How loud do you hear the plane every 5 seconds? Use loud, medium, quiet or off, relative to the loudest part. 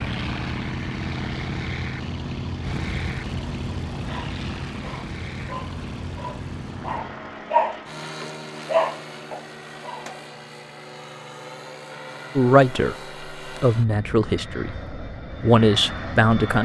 loud, medium, medium, loud.